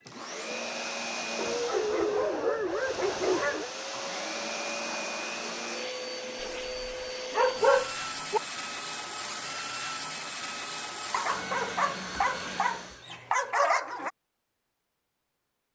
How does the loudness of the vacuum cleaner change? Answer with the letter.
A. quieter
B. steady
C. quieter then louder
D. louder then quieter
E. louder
B.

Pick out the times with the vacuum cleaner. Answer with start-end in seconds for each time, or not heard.
0.0-13.1.